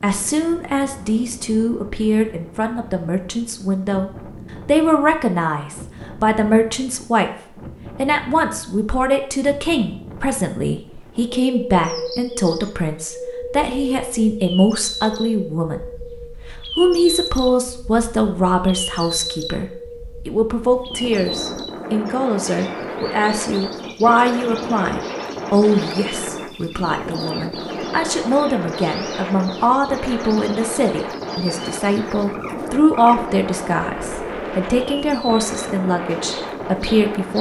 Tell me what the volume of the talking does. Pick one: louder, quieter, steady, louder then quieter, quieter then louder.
steady.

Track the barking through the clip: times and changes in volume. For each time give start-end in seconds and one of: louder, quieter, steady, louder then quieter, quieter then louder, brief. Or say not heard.
not heard.